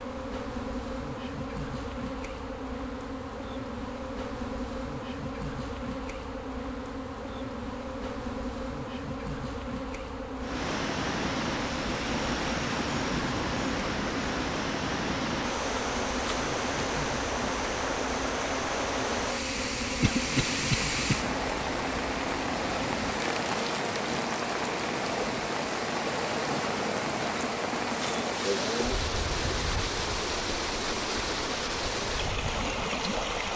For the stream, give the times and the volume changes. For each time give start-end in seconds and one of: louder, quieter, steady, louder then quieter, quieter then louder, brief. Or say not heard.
10.3-33.5 steady.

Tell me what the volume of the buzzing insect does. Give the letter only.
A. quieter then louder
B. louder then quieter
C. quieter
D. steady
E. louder
D.